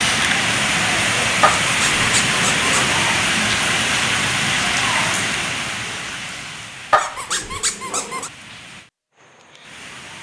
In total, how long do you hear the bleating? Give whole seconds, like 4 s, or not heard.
not heard.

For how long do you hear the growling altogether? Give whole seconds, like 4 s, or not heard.
3 s.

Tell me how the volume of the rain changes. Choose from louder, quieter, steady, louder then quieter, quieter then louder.
quieter.